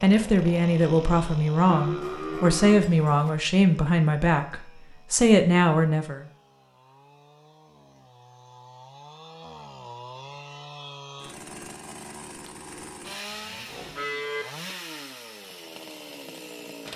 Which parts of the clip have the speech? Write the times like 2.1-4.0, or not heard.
0.0-6.2.